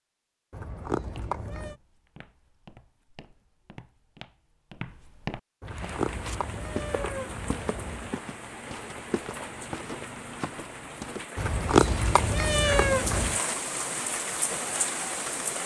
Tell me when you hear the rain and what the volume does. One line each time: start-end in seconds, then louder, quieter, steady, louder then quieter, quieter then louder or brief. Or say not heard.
5.7-15.6 louder.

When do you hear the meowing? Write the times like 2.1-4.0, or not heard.
0.5-1.8, 5.6-8.2, 11.3-13.4.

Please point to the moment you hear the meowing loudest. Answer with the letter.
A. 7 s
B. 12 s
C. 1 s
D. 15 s
B.